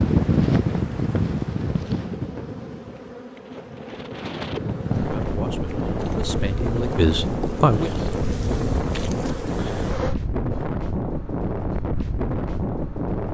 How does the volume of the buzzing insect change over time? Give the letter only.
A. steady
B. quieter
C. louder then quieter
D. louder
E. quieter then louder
D.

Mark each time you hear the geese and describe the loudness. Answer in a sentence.
You can't hear the geese here.